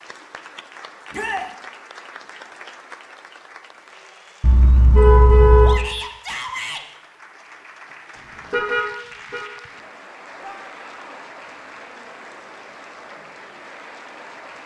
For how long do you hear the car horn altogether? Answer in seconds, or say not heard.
2 s.